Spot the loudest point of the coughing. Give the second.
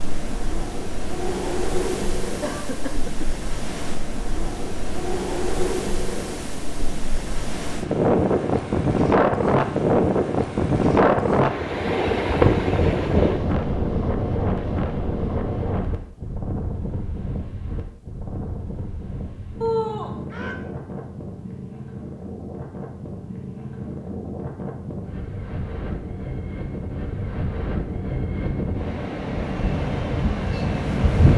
20 s.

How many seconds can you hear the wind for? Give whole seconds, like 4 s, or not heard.
31 s.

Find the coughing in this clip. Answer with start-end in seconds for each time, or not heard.
2.4-3.2, 19.6-20.6.